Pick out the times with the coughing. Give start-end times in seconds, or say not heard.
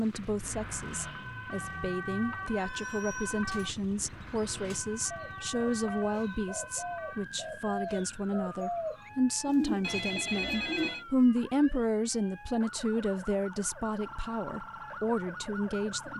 not heard.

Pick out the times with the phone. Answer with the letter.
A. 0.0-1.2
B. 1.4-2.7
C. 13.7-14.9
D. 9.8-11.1
D.